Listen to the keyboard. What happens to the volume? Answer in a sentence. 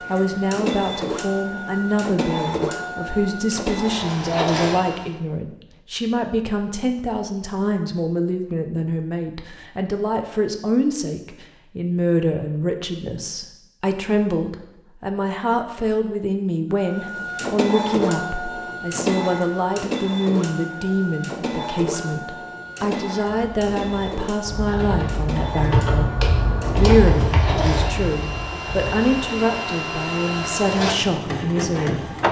The volume of the keyboard goes up, then down.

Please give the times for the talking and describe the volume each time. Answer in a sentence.
You can hear the talking from 0.1 to 32.1 s, at a steady volume.